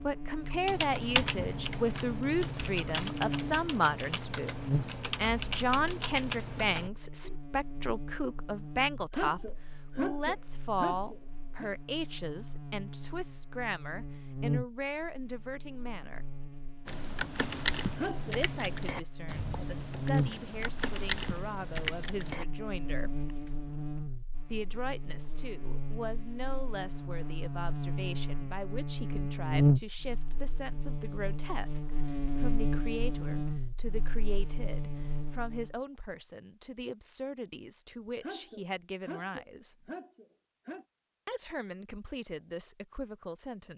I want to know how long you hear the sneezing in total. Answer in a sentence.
The sneezing can be heard for 6 seconds in total.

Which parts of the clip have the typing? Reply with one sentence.
You can hear the typing from 0.7 to 7.3 s and from 16.9 to 23.6 s.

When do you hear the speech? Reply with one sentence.
The speech can be heard from 0.0 to 16.2 s, from 18.2 to 23.1 s, from 24.5 to 39.9 s and from 41.2 to 43.7 s.